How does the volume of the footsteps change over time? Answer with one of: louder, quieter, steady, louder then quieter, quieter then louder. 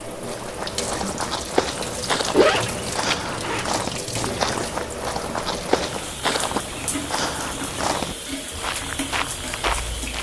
steady.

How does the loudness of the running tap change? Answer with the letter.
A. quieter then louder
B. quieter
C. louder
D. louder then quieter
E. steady
E.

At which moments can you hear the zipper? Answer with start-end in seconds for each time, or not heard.
2.3-3.6.